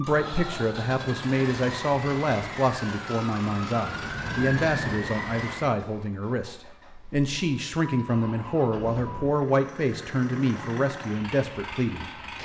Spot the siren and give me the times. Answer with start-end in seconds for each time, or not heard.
0.0-5.8.